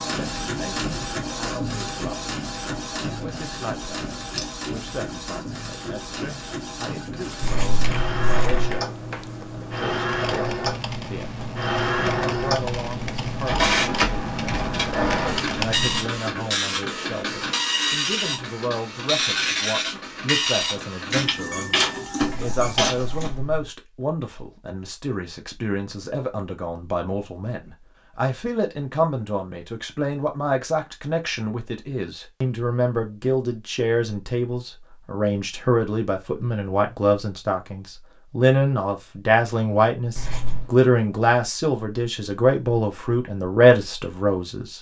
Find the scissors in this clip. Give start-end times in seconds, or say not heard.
7.4-8.7, 22.2-23.7, 40.1-40.6.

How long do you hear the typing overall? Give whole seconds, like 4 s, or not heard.
9 s.